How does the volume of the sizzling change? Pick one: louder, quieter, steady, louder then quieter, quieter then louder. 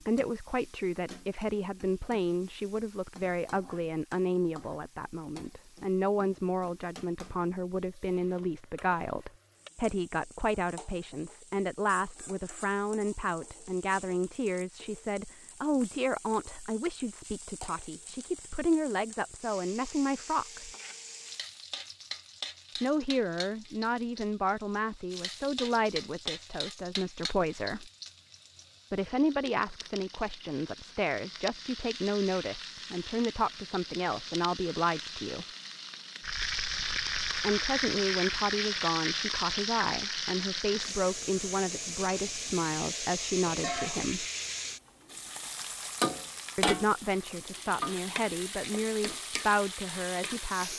louder.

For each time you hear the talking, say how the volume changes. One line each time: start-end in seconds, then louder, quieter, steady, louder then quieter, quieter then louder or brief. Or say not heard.
0.0-20.7 steady
22.8-27.9 steady
28.9-35.5 steady
37.4-44.2 steady
46.5-50.7 louder then quieter.